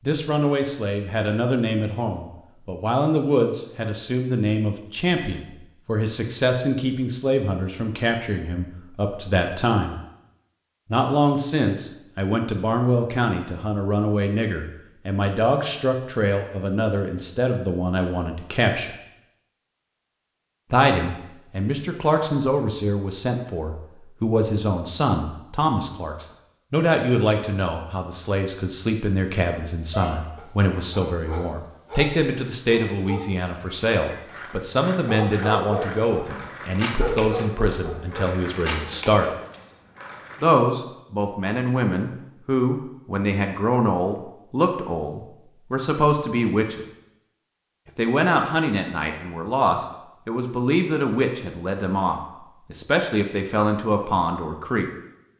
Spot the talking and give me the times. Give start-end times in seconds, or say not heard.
0.1-9.9, 10.9-18.9, 20.7-39.3, 40.4-46.9, 48.0-54.9.